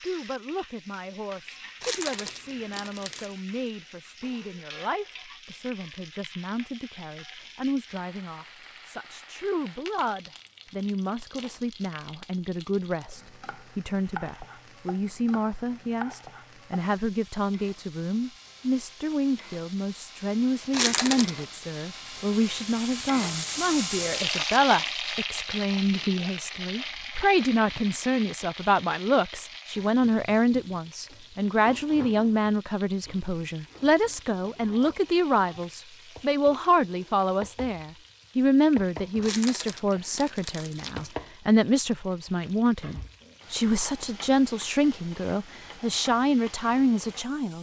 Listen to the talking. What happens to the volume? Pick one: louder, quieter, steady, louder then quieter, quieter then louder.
louder.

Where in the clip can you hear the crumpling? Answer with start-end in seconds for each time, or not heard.
1.8-3.4, 20.7-21.4, 39.2-41.1.